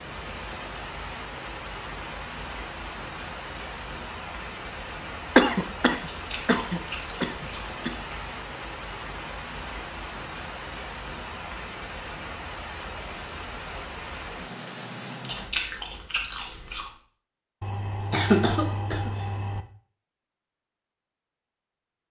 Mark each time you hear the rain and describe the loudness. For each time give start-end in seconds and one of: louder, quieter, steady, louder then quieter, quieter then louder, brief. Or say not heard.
0.0-15.6 steady.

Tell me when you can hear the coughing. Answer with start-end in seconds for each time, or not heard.
5.3-7.9, 17.6-19.6.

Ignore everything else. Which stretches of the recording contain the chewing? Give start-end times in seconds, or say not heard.
6.1-8.2, 15.3-16.9.